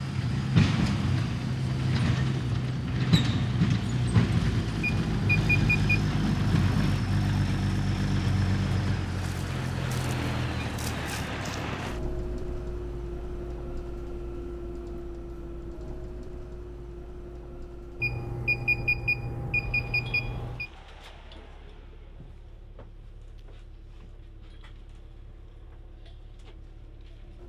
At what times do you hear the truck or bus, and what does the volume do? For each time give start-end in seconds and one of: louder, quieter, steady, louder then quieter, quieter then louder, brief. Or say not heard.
0.0-27.4 quieter.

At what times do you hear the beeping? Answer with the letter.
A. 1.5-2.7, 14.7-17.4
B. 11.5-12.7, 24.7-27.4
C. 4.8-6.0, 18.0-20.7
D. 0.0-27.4
C.